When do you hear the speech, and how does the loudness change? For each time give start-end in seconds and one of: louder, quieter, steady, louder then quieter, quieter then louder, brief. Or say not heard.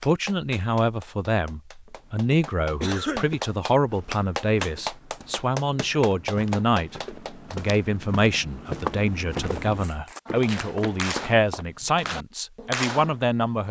0.0-13.6 steady.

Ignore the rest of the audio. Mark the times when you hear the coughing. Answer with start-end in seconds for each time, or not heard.
2.8-3.4.